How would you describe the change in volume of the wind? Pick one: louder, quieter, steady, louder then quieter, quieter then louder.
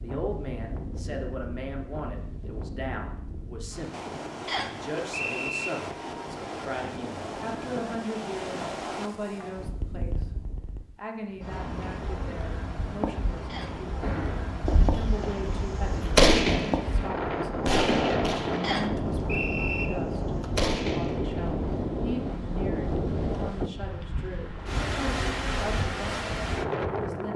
louder.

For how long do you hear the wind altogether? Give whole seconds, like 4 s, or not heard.
27 s.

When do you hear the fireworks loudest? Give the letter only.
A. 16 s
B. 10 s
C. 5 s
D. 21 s
A.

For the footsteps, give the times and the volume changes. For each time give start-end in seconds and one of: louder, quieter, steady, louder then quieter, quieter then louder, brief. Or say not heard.
not heard.